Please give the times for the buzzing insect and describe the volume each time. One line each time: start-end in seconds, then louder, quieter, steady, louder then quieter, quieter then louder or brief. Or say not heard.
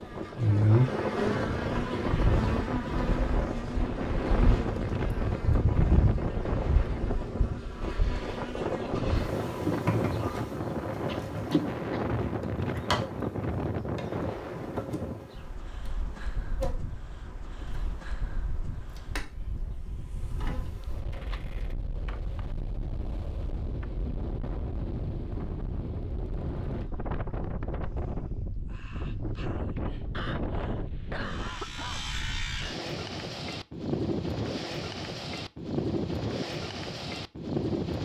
0.1-21.1 quieter.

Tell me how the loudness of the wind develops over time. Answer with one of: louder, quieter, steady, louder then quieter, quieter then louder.
quieter then louder.